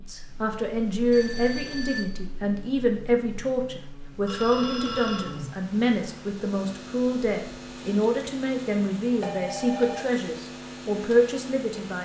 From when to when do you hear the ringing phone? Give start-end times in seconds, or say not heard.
1.1-2.1, 4.2-5.5, 9.2-10.1.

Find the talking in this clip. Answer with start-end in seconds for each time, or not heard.
0.1-12.0.